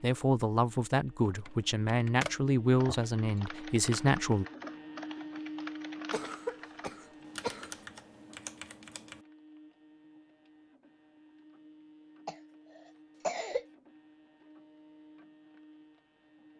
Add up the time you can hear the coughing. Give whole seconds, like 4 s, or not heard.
4 s.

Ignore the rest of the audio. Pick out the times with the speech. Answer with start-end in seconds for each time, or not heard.
0.0-4.5.